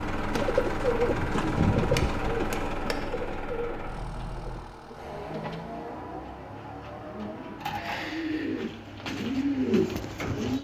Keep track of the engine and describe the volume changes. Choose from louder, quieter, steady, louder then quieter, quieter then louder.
quieter.